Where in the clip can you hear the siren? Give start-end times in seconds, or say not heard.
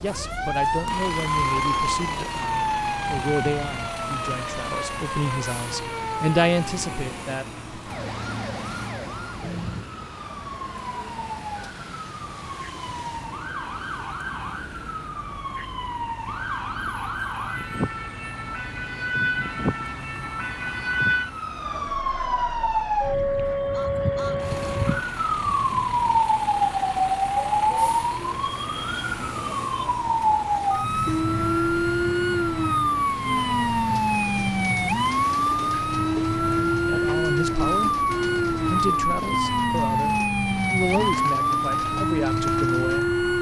0.0-43.3.